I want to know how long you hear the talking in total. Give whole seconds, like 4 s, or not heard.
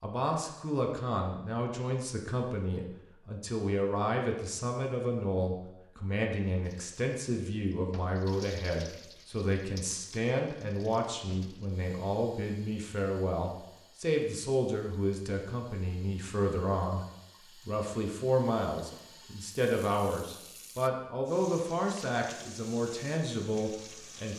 24 s.